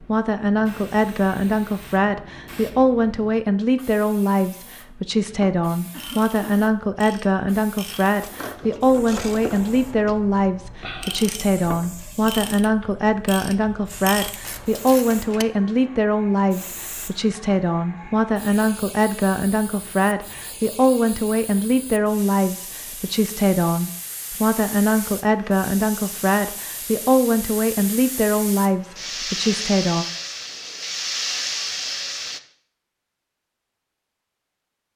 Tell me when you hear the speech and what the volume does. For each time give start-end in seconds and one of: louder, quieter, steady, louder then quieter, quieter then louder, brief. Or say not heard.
0.0-30.1 steady.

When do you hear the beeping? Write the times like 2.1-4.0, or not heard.
not heard.